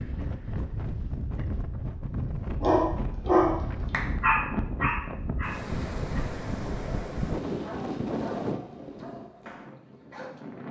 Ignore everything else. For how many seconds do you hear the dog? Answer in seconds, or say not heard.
8 s.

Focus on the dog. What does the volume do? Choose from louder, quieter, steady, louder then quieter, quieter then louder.
quieter.